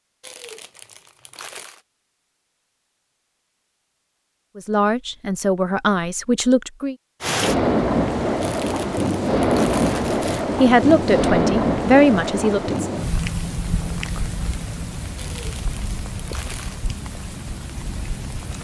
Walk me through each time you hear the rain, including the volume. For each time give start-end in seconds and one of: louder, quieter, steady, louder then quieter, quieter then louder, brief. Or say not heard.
7.2-18.5 quieter.